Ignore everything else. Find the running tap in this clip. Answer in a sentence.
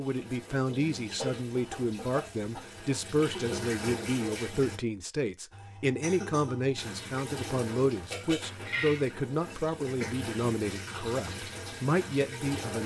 The running tap can be heard from 0.0 to 4.8 s and from 6.8 to 12.8 s.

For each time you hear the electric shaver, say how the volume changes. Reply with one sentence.
The electric shaver can't be heard in this clip.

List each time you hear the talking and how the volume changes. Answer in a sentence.
You can hear the talking from 0.0 to 12.8 s, at a steady volume.